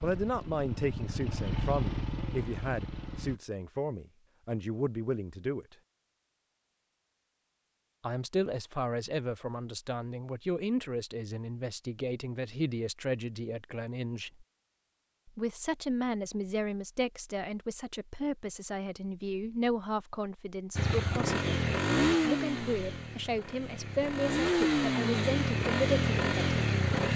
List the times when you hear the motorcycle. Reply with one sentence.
The motorcycle can be heard from 0.0 to 3.4 s and from 20.8 to 27.1 s.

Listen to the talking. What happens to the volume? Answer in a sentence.
The loudness of the talking stays about the same.